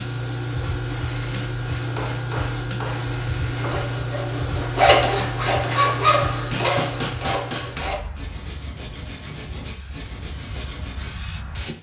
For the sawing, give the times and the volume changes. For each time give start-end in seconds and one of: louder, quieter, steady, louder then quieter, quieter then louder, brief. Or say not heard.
3.5-11.1 quieter.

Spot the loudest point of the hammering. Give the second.
7 s.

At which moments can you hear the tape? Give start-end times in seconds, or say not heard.
not heard.